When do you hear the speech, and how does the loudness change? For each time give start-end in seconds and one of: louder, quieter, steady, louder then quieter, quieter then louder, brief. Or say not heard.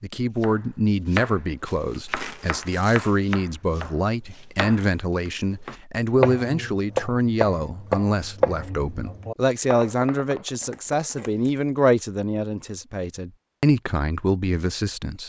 0.0-15.2 steady.